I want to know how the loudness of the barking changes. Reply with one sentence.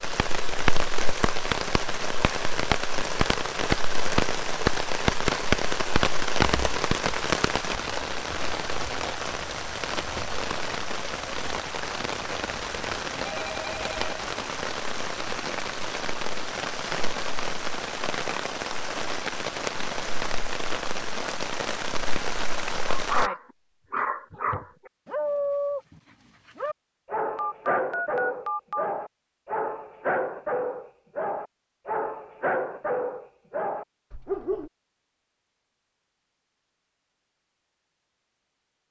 The loudness of the barking stays about the same.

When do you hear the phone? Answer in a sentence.
The phone can be heard from 13.2 to 14.0 s and from 27.4 to 28.9 s.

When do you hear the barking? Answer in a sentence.
You can hear the barking from 22.9 to 34.7 s.